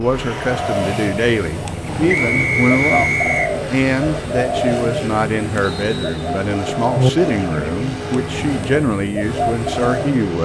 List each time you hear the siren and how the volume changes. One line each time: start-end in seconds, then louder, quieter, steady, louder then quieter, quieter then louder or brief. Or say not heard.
not heard.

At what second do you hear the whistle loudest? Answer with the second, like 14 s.
3 s.